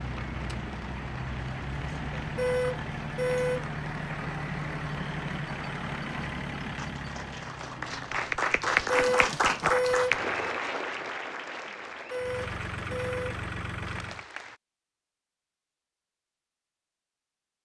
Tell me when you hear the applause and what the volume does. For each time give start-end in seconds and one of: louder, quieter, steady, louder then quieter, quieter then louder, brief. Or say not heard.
0.0-14.6 louder then quieter.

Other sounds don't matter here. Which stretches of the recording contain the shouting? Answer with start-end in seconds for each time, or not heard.
not heard.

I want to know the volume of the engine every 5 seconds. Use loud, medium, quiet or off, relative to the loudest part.
loud, loud, loud, off.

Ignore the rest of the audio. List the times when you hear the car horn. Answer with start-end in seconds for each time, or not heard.
2.4-3.7, 8.9-10.2, 11.8-13.2.